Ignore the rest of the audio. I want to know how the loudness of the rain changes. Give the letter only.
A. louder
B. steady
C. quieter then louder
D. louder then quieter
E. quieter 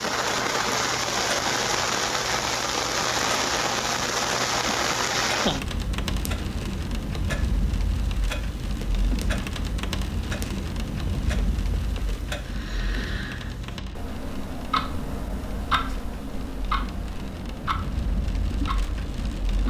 E.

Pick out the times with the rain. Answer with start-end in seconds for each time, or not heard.
0.0-19.6.